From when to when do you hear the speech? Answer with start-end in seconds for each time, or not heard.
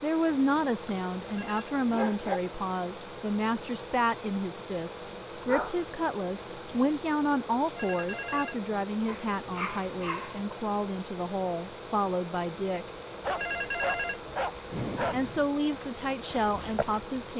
0.0-12.9, 14.7-17.3.